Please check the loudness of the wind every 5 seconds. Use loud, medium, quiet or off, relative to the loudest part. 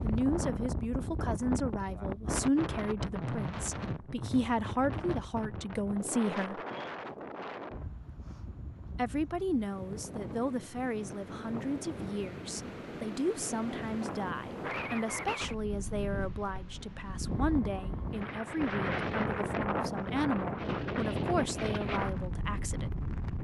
loud, medium, medium, loud, loud.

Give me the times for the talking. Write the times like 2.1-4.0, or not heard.
0.0-6.6, 8.9-22.9.